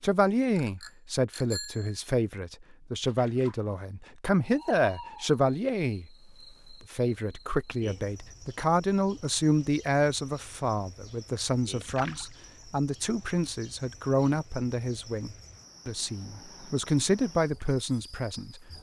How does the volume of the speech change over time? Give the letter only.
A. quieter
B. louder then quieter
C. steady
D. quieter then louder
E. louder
C.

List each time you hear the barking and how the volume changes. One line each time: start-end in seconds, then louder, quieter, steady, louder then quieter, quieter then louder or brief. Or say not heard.
not heard.